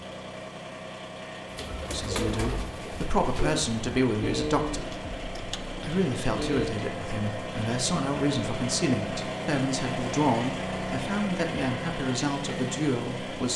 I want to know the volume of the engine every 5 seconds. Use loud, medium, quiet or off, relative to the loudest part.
medium, loud, loud.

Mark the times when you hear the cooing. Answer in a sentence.
The cooing can be heard from 1.4 to 6.8 s.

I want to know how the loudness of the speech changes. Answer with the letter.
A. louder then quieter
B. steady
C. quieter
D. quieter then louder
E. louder
B.